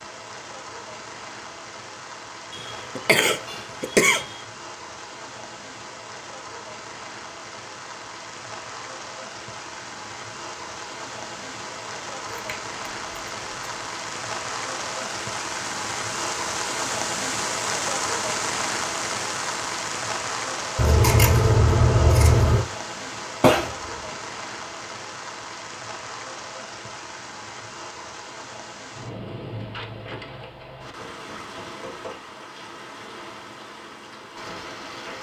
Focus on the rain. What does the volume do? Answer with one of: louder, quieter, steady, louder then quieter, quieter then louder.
louder then quieter.